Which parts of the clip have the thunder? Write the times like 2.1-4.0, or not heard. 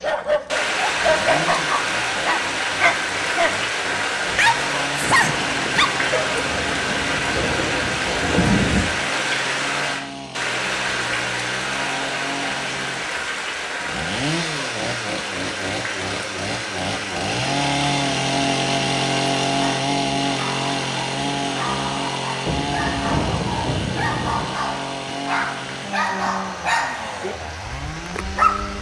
5.0-8.9, 22.4-24.4.